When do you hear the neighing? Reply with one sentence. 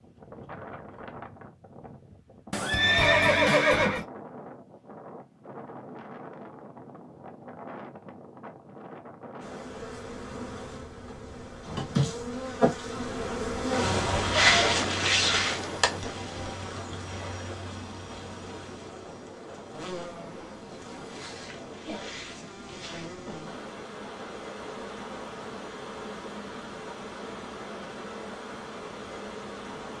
You can hear the neighing from 2.5 to 4.0 s.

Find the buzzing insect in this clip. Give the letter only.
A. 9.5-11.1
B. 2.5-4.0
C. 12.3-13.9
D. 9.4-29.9
D.